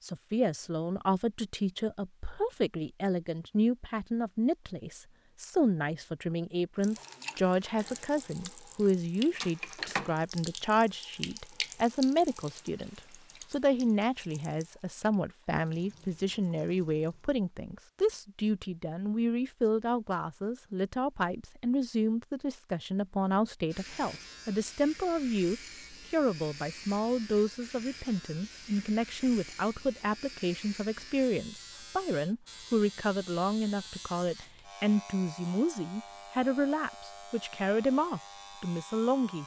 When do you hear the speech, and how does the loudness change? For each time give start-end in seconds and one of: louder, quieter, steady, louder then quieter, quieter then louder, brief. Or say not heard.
0.0-39.4 steady.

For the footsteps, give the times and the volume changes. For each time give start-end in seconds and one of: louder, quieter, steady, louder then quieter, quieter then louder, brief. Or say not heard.
not heard.